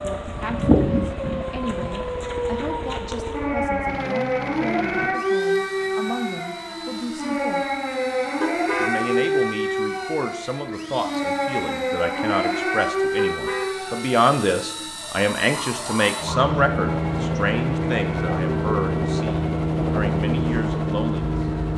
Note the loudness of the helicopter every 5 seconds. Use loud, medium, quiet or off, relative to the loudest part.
quiet, quiet, quiet, loud, loud.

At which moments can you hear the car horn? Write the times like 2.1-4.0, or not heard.
8.4-8.9, 13.2-13.8.